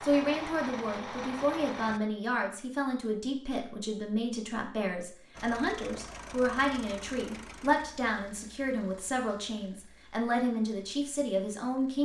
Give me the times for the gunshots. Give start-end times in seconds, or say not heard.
not heard.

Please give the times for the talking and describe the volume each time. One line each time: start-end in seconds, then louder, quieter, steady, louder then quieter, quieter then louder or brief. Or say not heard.
0.0-12.0 steady.